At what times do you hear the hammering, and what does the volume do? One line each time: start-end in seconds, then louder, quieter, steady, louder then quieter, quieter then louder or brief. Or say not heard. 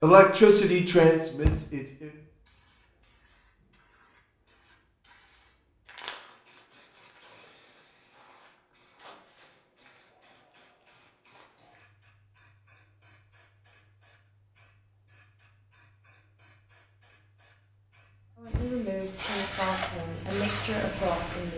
not heard.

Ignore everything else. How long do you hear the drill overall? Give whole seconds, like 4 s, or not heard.
2 s.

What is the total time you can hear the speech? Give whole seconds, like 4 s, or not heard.
5 s.